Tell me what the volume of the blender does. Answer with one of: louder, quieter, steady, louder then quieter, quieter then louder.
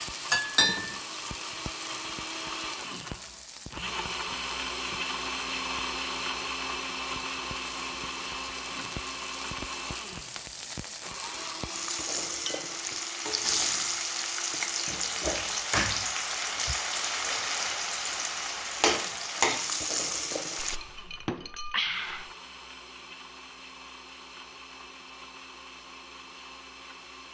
quieter.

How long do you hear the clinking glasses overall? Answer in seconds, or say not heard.
3 s.